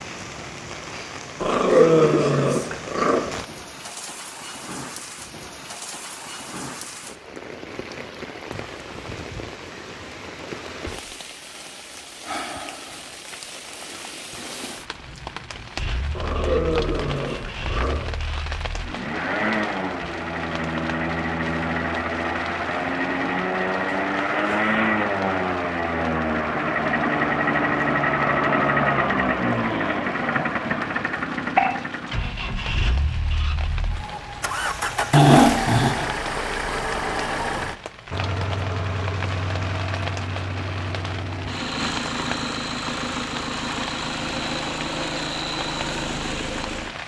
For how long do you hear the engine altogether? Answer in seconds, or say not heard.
31 s.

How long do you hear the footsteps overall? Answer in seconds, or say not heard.
not heard.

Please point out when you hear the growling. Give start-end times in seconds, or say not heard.
1.4-3.2, 16.1-17.9, 35.1-36.0.